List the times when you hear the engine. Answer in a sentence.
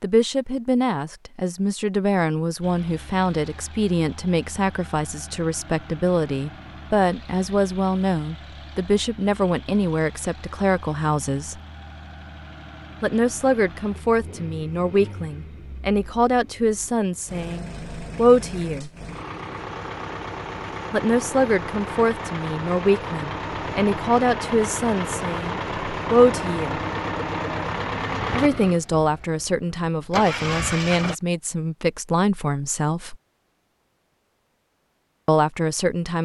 You can hear the engine from 2.6 to 31.1 s.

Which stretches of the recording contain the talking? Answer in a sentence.
The talking can be heard from 0.0 to 11.6 s, from 13.0 to 18.9 s, from 20.9 to 26.8 s, from 28.3 to 33.1 s and from 35.2 to 36.2 s.